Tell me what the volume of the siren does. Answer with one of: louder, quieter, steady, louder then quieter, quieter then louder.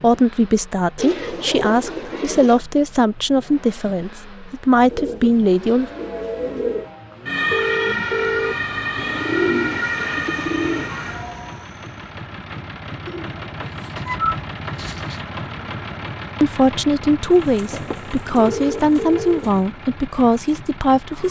louder then quieter.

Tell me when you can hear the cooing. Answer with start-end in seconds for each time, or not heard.
0.9-2.6, 4.8-6.9, 8.9-11.2, 13.1-15.2, 17.4-19.6.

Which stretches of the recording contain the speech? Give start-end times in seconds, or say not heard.
0.0-5.9, 16.4-21.2.